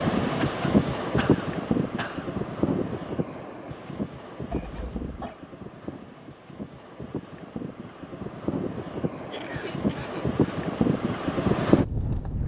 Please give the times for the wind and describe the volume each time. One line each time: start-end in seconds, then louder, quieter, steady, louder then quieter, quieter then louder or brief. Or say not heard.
0.0-12.4 quieter then louder.